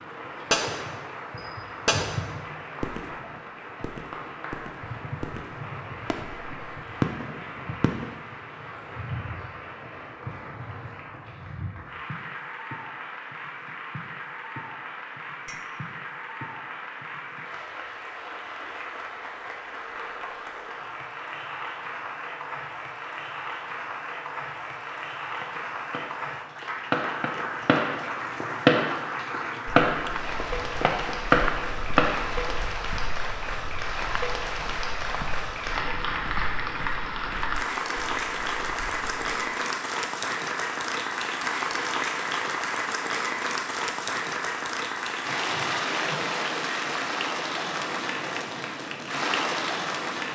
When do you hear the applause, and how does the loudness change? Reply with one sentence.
The applause can be heard from 0.0 to 50.3 s, getting louder.